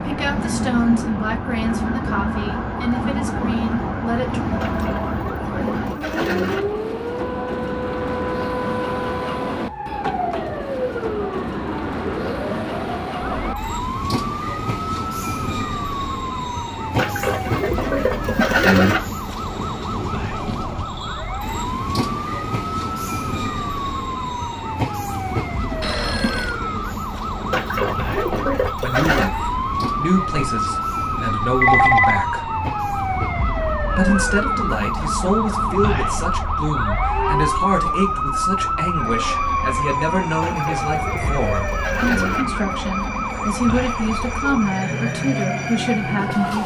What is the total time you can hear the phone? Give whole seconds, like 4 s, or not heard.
2 s.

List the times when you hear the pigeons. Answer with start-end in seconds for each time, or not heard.
4.6-6.6, 16.9-19.0, 27.5-29.3, 40.4-42.5.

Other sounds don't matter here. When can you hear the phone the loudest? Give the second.
32 s.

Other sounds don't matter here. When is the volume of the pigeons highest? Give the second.
19 s.